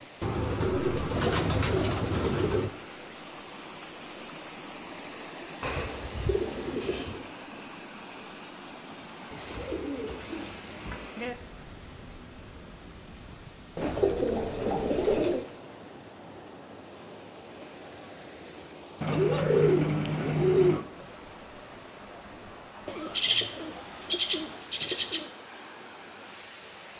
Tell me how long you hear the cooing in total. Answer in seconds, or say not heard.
12 s.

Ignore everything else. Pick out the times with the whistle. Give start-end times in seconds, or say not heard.
not heard.